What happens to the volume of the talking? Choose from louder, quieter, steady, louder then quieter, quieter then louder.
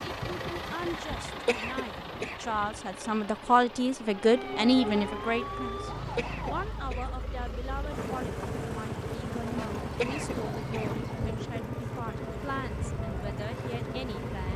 louder then quieter.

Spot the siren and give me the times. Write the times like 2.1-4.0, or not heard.
4.0-6.9, 9.3-11.4.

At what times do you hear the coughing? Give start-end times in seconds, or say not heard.
1.4-2.4, 6.2-7.0, 9.9-10.9.